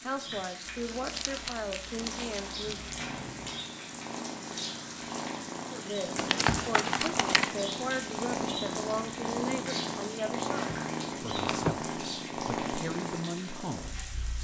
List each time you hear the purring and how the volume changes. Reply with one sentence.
The purring can be heard from 0.0 to 14.3 s, getting louder.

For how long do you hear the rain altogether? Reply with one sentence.
You can hear the rain for 14 seconds altogether.